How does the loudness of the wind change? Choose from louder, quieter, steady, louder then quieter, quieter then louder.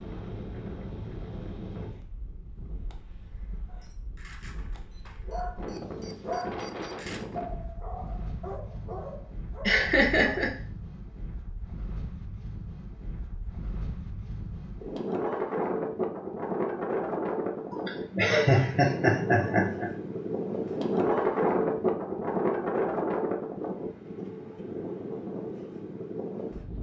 louder.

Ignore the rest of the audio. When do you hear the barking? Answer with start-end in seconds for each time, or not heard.
3.6-10.5.